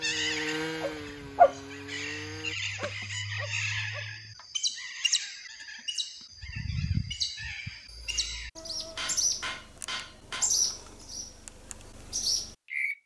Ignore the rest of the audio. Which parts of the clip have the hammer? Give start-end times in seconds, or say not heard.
8.9-10.5.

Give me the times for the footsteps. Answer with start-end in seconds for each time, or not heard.
not heard.